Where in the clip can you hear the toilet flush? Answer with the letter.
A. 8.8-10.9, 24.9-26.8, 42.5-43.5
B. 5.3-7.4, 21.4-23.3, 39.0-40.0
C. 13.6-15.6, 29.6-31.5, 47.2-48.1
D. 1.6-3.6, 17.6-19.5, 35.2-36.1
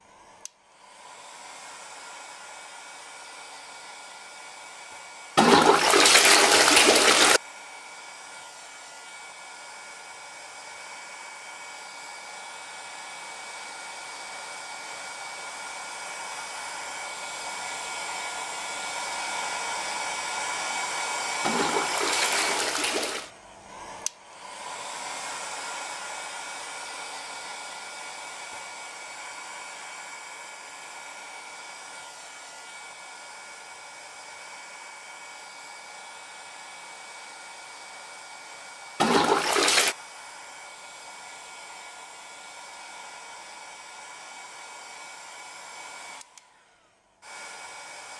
B.